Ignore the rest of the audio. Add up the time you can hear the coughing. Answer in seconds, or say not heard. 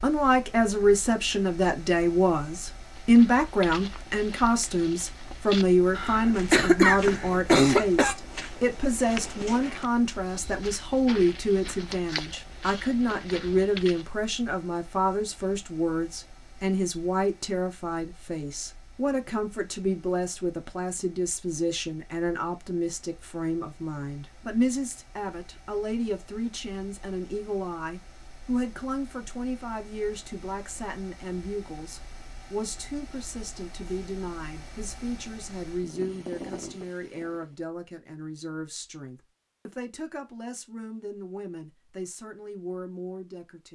2 s.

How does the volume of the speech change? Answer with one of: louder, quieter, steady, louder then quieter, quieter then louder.
quieter.